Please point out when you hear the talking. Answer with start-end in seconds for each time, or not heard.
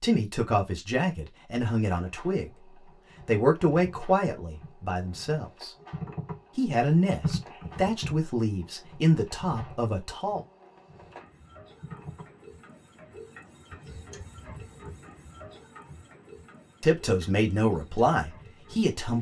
0.0-2.5, 3.2-5.7, 6.5-10.4, 16.8-19.1.